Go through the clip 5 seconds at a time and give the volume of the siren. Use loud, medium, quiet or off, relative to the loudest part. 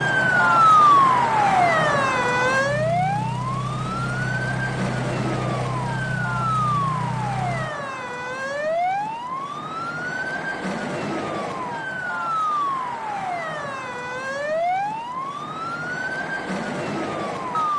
loud, medium, medium, medium.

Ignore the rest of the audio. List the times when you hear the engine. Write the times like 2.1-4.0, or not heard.
0.2-7.8.